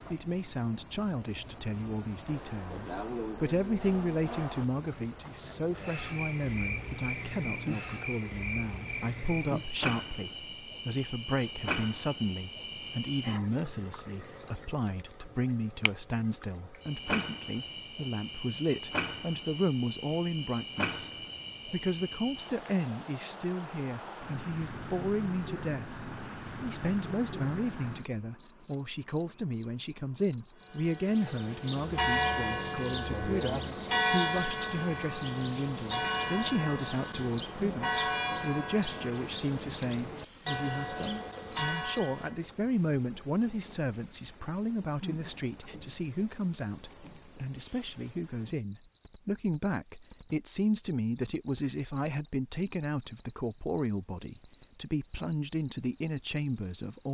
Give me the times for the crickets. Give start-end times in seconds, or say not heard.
0.0-57.0.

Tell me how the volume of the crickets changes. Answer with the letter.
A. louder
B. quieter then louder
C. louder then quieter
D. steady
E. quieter
D.